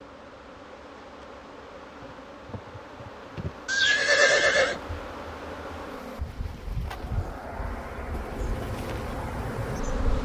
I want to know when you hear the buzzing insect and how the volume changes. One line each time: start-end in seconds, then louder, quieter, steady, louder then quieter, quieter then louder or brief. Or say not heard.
0.0-10.2 louder.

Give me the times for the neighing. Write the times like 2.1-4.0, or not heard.
3.6-4.8.